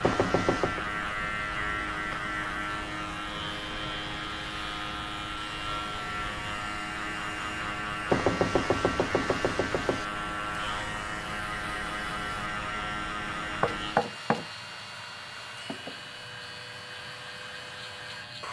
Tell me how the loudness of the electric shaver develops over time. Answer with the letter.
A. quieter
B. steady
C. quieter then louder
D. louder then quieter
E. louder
A.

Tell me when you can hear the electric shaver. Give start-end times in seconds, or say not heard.
0.0-18.4.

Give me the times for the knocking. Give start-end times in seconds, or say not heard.
0.0-0.8, 8.1-10.1, 13.6-14.4.